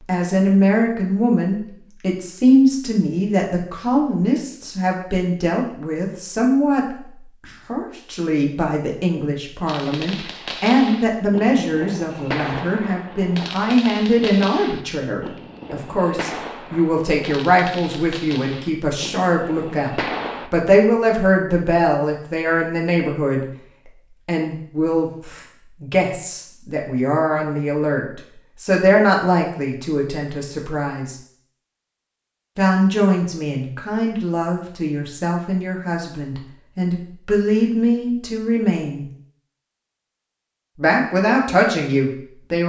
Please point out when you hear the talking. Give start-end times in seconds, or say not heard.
0.1-23.4, 24.2-31.1, 32.5-39.0, 40.8-42.6.